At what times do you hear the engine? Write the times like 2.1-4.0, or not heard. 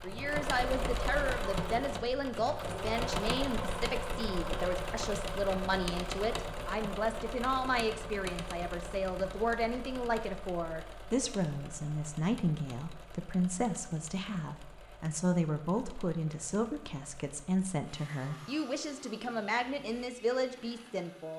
0.0-21.3.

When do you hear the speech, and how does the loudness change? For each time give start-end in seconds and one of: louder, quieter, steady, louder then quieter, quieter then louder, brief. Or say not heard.
0.0-21.3 steady.